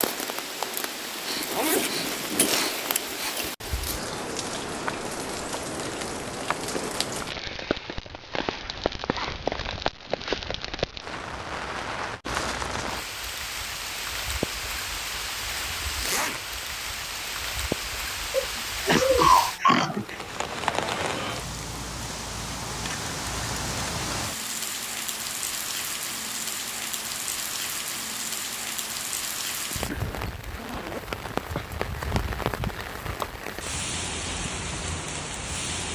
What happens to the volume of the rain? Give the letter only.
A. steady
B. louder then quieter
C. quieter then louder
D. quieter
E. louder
A.